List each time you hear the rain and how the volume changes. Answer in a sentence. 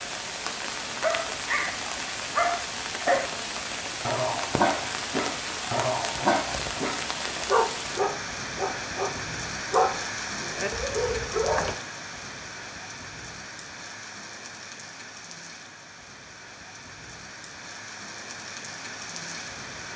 The rain can be heard from 0.0 to 19.9 s, getting quieter.